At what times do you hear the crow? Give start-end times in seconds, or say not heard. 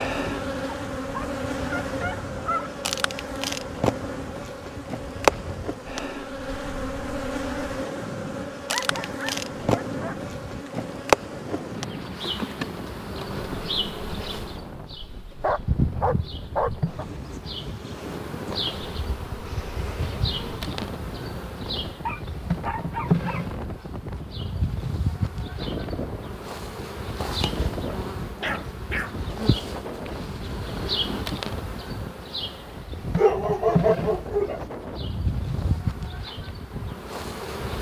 not heard.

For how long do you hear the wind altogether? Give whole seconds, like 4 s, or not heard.
38 s.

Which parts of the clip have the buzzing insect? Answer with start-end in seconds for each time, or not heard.
0.0-37.7.